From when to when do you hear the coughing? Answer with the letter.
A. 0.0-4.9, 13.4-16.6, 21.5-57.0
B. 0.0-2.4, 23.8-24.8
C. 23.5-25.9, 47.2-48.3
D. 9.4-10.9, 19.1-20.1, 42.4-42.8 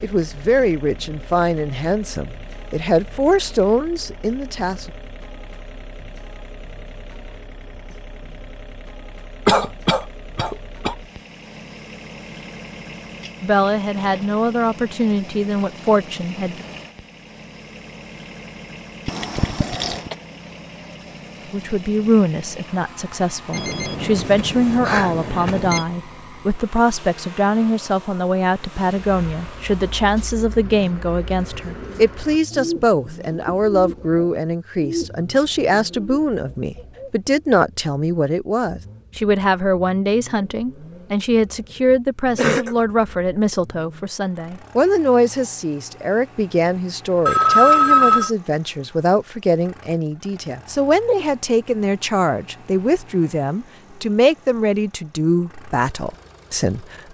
D.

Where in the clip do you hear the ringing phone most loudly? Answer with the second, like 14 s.
48 s.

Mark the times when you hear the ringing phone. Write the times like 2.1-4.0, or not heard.
23.5-25.9, 47.2-48.3.